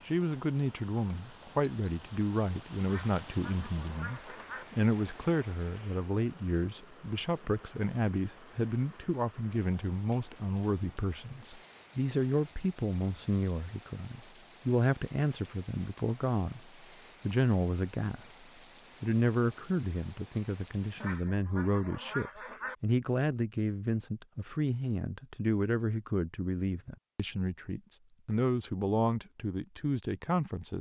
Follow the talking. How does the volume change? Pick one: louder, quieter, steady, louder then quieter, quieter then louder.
steady.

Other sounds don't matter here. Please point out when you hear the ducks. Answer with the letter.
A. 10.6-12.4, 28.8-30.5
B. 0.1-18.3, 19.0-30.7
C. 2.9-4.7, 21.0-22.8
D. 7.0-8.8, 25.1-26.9
C.